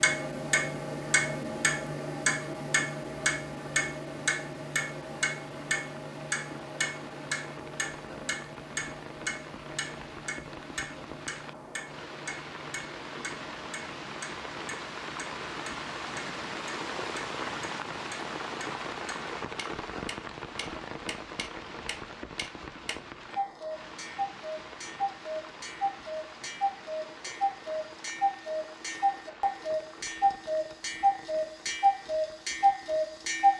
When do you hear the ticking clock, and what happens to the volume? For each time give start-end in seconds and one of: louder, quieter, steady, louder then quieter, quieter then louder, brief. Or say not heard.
0.0-33.5 quieter then louder.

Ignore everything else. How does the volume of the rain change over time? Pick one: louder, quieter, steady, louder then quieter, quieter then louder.
louder then quieter.